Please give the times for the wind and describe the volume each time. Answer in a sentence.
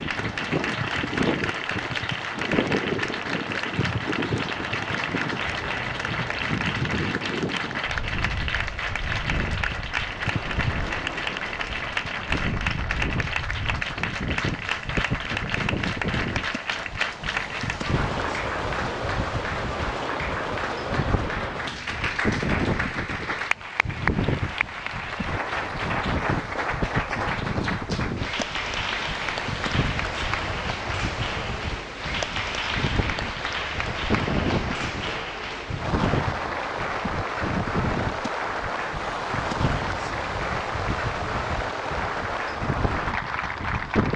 You can hear the wind from 0.0 to 44.1 s, at a steady volume.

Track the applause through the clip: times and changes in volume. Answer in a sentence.
The applause can be heard from 0.0 to 44.1 s, at a steady volume.